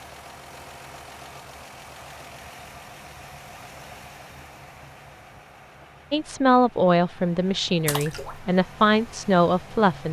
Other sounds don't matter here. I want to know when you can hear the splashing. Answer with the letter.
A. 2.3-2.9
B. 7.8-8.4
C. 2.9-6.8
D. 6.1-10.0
B.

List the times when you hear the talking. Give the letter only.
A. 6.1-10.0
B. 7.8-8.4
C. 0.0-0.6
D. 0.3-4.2
A.